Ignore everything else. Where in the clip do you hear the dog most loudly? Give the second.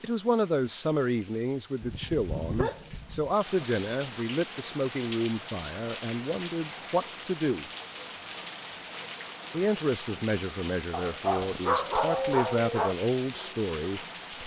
12 s.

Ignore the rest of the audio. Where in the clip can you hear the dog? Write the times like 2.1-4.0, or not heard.
1.8-3.3, 10.9-12.9.